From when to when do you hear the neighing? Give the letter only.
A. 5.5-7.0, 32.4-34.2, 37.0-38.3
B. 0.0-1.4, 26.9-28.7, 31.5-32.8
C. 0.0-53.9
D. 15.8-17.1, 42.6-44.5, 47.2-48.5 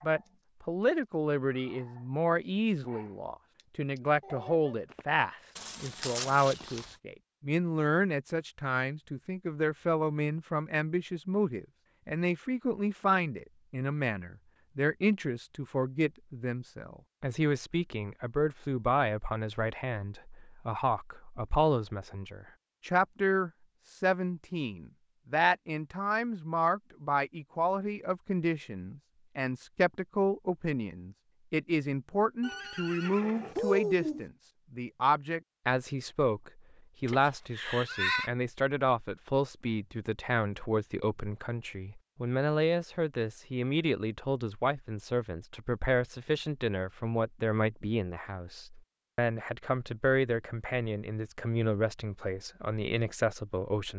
A.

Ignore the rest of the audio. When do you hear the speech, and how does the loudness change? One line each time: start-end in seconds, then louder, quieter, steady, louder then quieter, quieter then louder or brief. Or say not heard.
0.0-53.9 steady.